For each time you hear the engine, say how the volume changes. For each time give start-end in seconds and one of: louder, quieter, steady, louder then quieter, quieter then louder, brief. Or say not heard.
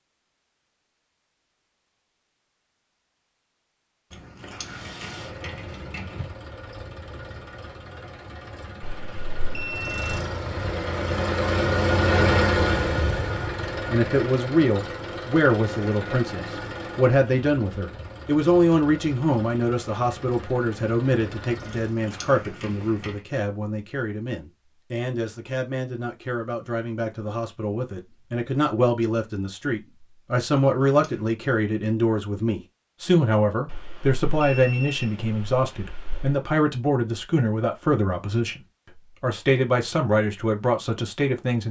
4.6-22.0 louder then quieter.